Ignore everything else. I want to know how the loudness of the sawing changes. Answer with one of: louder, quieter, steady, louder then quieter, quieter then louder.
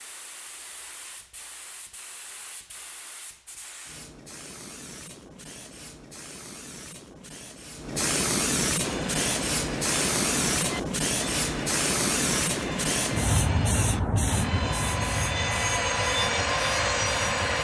louder.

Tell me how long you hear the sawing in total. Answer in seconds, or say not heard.
9 s.